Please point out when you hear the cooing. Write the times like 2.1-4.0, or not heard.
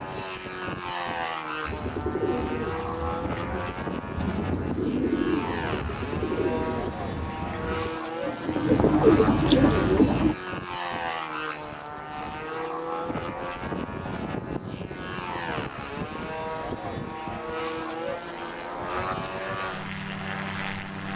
1.6-10.3.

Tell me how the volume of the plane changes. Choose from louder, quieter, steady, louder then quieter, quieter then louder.
steady.